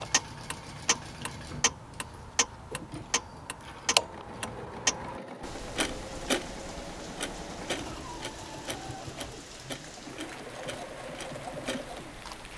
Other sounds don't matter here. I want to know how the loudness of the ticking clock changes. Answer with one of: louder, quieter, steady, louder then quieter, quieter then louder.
louder then quieter.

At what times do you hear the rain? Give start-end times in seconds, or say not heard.
5.4-12.5.